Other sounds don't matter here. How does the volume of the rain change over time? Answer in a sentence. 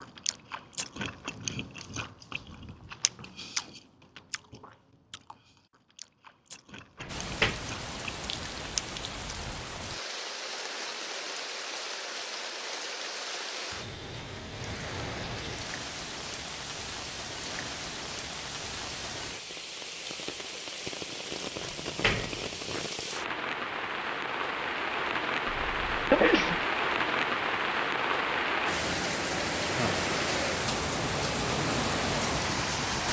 The loudness of the rain goes up.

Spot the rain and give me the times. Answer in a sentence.
The rain can be heard from 7.0 to 33.0 s.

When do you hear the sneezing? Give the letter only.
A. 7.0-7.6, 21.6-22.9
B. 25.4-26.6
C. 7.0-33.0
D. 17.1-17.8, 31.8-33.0
B.